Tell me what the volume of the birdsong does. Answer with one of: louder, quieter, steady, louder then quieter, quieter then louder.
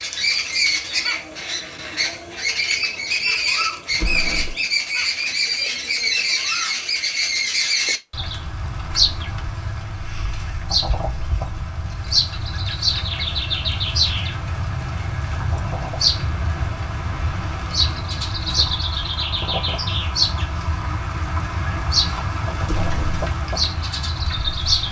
steady.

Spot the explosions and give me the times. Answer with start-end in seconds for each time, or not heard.
3.9-4.7, 22.6-23.3.